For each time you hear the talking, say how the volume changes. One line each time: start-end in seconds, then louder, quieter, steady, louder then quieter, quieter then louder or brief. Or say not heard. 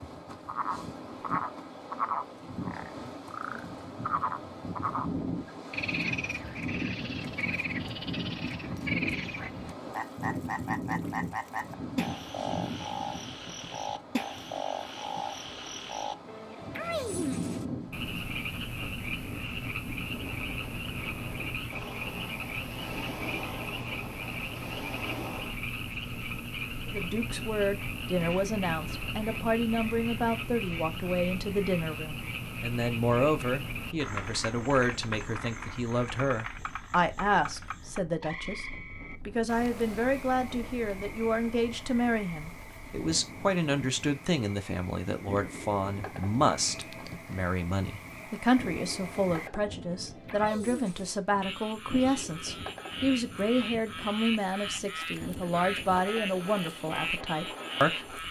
26.9-58.2 steady.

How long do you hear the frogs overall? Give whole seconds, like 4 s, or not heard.
58 s.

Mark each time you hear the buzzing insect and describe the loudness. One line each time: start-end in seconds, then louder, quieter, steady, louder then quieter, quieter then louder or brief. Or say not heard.
not heard.